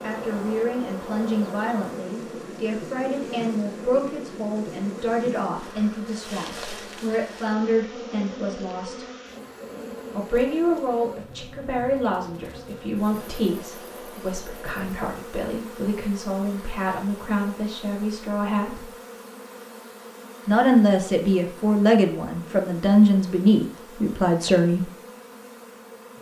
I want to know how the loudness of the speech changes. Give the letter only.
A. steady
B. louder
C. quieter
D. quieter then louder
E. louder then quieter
B.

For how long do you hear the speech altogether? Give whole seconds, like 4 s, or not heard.
22 s.